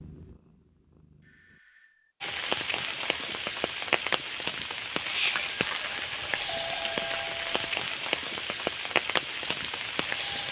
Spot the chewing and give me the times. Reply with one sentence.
The chewing can't be heard in this clip.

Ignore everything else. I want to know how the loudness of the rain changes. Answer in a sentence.
The volume of the rain stays about the same.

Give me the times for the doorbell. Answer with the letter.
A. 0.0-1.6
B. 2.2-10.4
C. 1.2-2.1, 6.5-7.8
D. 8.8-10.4
C.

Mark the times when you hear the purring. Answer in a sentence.
The purring can be heard from 0.0 to 1.6 s.